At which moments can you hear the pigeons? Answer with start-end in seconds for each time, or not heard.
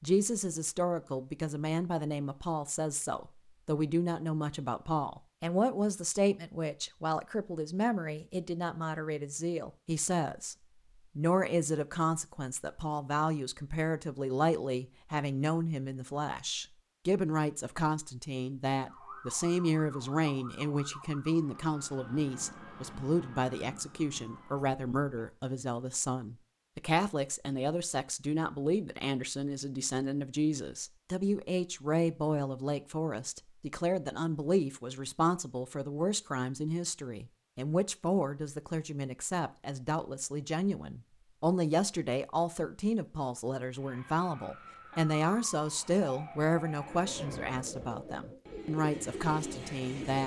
46.8-50.2.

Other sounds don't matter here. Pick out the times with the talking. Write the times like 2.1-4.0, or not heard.
0.0-10.6, 11.2-50.2.